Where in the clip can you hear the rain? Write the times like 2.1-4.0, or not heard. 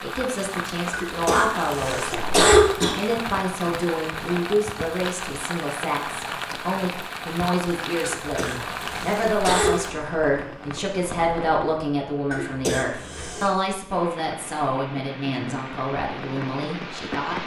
0.0-17.4.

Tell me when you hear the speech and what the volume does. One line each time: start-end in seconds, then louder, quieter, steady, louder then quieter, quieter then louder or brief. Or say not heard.
0.0-17.4 steady.